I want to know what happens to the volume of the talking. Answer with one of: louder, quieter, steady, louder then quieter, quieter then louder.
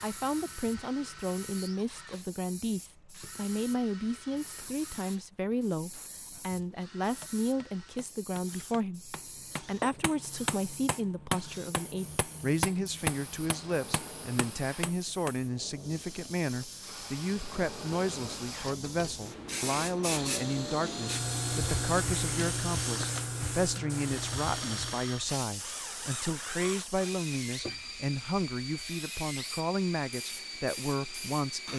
steady.